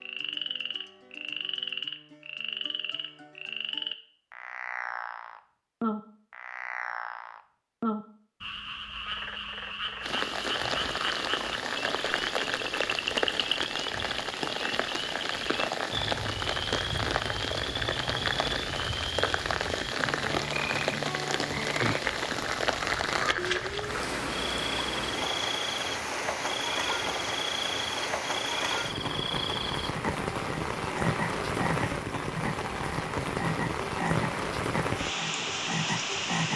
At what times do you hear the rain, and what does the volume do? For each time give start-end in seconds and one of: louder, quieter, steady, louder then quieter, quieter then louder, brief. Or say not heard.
10.0-36.5 steady.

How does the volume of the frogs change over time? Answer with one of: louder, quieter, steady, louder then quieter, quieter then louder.
steady.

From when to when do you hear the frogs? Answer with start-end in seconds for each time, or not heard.
0.0-36.5.